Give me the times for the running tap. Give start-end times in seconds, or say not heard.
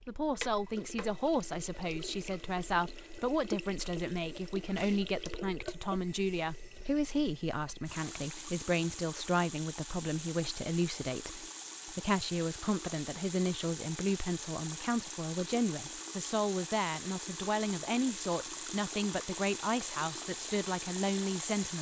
0.0-21.7.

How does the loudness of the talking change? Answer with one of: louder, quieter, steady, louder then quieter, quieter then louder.
steady.